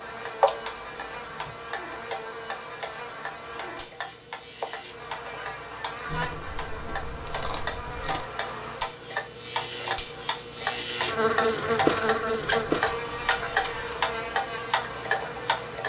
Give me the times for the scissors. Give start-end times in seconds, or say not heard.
0.5-1.6, 6.0-8.2, 12.0-13.7.